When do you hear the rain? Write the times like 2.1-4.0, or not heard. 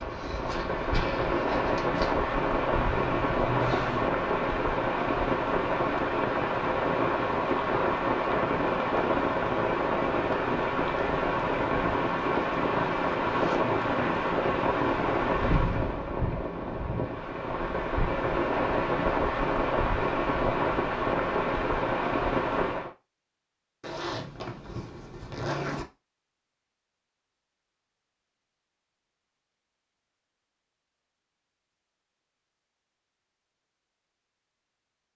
0.0-22.9.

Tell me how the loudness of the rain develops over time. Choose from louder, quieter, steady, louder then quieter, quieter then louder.
steady.